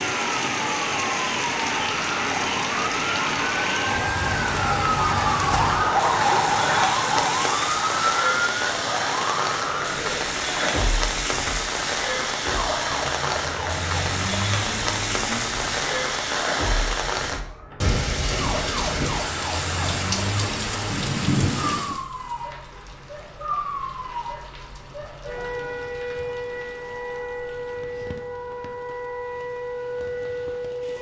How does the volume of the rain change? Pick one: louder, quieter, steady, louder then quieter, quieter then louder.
quieter.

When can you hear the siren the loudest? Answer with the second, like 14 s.
6 s.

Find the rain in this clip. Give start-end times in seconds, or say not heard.
0.0-30.9.